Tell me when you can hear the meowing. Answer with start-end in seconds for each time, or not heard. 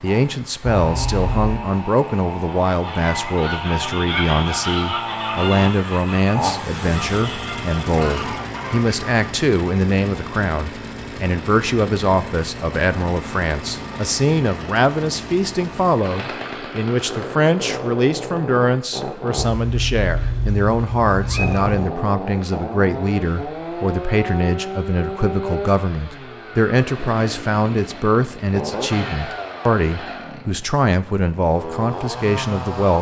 0.9-1.6, 19.4-21.9.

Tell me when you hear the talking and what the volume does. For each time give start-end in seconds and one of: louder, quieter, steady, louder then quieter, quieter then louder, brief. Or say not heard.
0.0-32.9 steady.